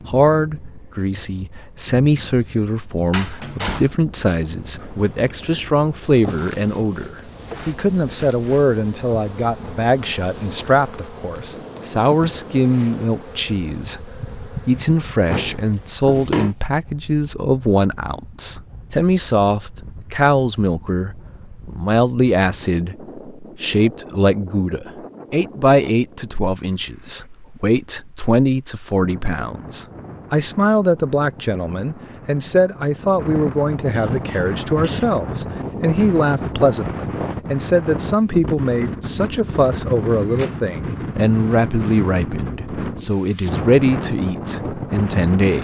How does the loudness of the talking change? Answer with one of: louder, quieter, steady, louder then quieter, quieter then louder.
steady.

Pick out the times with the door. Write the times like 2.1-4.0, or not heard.
3.1-3.9, 15.2-16.6, 40.2-40.7.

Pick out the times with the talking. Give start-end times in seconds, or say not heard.
0.1-45.5.